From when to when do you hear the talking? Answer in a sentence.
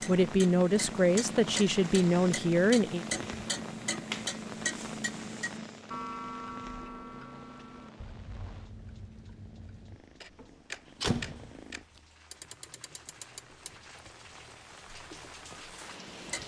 You can hear the talking from 0.1 to 3.0 s.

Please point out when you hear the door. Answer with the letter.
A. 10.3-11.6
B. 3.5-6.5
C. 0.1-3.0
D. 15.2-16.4
A.